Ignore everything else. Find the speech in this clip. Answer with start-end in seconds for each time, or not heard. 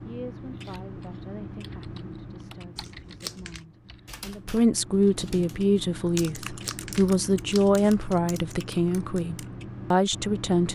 0.0-10.7.